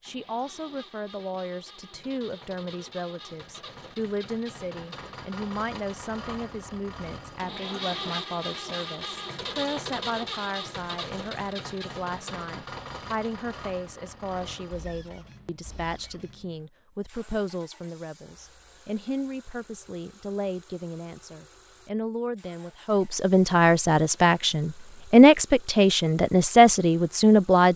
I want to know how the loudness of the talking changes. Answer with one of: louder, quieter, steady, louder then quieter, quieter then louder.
louder.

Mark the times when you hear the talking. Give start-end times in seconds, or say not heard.
0.0-27.7.